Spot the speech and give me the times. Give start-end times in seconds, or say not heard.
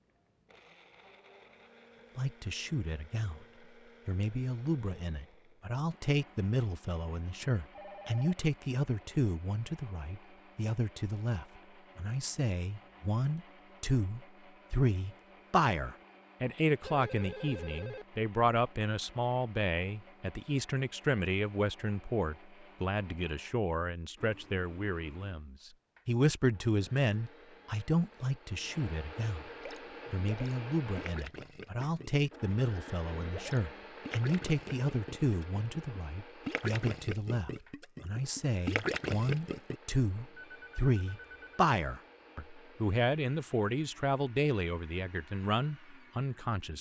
2.1-3.5, 4.0-29.5, 30.1-46.7.